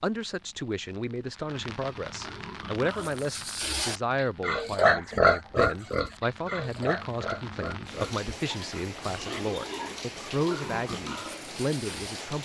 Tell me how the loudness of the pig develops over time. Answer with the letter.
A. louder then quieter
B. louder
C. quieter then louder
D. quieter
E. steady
A.